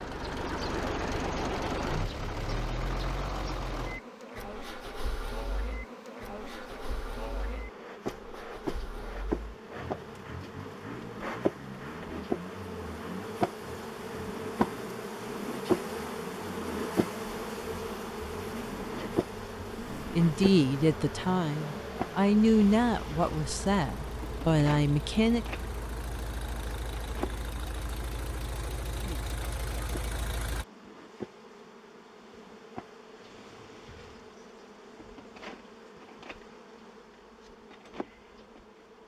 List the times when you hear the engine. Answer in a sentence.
The engine can be heard from 0.0 to 30.6 s.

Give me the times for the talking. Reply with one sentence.
You can hear the talking from 20.1 to 25.4 s.